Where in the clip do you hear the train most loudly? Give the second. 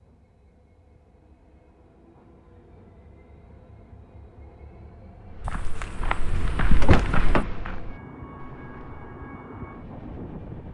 10 s.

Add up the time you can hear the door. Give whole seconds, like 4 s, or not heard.
2 s.